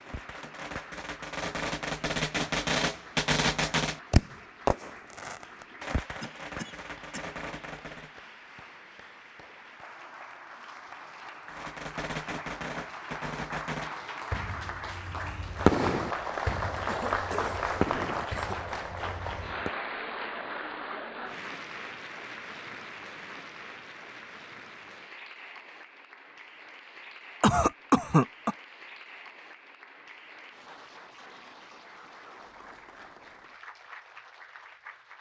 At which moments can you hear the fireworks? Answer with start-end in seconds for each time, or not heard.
0.0-8.2, 11.4-19.7.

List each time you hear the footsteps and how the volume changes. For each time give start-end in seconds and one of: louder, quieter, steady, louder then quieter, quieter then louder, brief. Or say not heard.
not heard.